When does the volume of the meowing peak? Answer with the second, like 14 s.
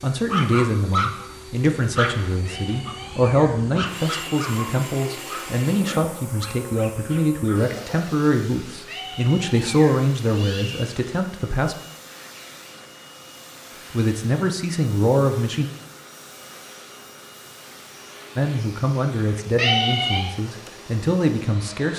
20 s.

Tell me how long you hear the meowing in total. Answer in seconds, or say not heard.
5 s.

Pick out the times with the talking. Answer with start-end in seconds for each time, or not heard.
0.0-11.8, 13.9-15.7, 18.4-21.9.